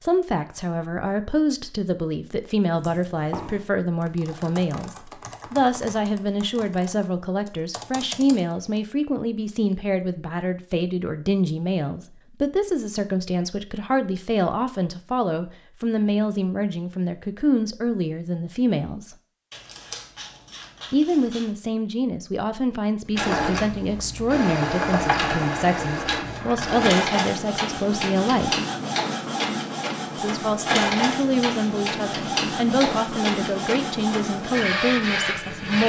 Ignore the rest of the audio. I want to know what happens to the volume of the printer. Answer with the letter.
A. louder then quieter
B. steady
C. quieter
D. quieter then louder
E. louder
B.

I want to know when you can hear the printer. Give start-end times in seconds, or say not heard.
23.1-35.8.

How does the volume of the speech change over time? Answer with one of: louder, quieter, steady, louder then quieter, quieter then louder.
steady.